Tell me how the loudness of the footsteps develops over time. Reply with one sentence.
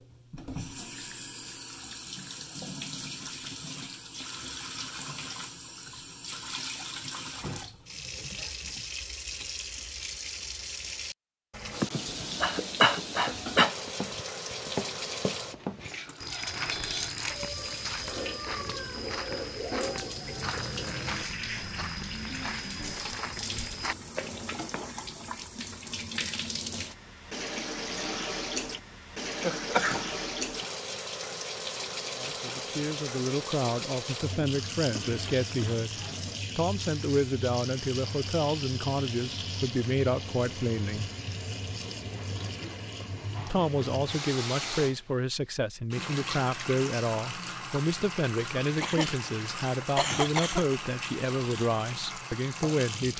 The volume of the footsteps stays about the same.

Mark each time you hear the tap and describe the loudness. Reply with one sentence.
The tap can be heard from 0.0 to 53.1 s, at a steady volume.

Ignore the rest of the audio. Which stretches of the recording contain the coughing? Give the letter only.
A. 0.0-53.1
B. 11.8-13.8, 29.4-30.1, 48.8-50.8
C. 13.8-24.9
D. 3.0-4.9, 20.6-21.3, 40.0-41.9
B.